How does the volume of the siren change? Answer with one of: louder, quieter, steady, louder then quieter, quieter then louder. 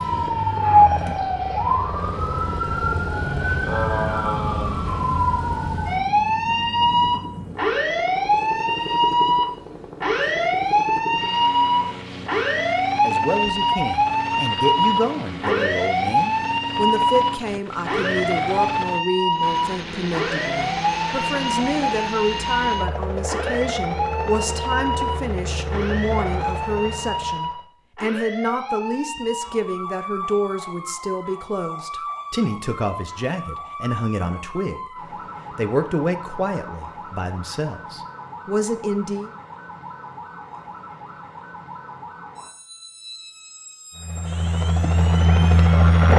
quieter.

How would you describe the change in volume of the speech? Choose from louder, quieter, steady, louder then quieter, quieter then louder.
steady.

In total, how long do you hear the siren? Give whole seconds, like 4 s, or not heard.
46 s.